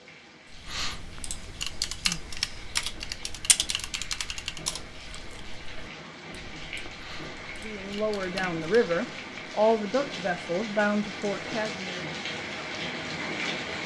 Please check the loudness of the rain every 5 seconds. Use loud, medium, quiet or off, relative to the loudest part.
quiet, medium, loud.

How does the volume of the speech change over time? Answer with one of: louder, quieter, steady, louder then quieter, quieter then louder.
louder then quieter.